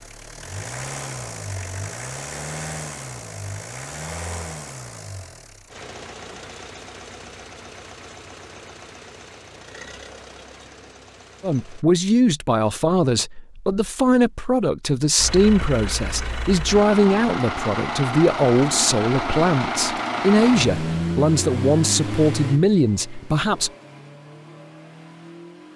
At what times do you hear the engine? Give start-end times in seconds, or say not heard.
0.0-11.8, 15.2-25.7.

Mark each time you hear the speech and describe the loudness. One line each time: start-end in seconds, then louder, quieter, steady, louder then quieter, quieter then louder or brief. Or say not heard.
11.4-23.7 steady.